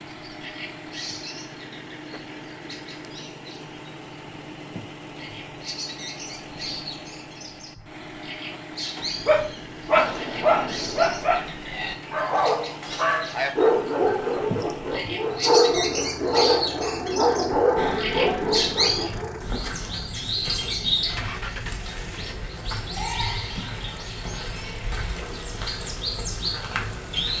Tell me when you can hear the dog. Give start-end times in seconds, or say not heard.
8.9-19.4.